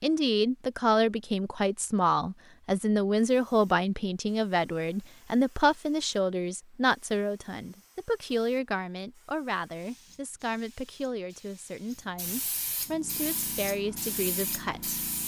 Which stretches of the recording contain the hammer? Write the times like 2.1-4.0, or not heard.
not heard.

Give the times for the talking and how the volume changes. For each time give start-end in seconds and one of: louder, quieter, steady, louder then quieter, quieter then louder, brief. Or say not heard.
0.0-15.1 quieter.